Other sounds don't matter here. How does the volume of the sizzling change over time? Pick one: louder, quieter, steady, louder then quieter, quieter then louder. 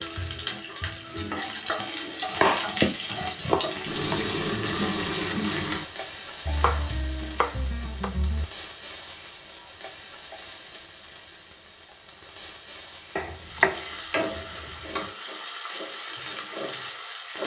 quieter then louder.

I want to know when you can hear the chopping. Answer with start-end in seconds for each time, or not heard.
2.3-4.2, 6.5-8.4, 13.2-15.1.